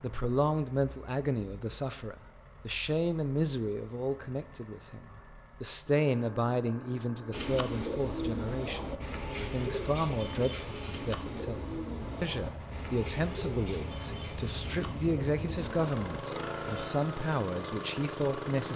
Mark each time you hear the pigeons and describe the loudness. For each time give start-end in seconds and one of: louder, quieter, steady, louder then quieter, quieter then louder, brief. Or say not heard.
7.3-16.9 quieter.